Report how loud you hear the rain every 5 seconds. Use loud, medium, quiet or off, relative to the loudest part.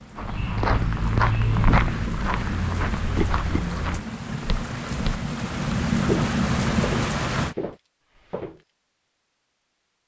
medium, loud.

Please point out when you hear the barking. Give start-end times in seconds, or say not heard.
not heard.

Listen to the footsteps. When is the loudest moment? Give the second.
2 s.